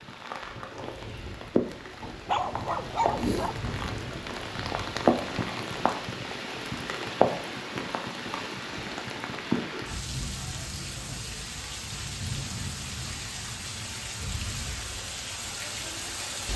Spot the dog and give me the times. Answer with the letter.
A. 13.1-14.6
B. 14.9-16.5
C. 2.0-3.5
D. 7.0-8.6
C.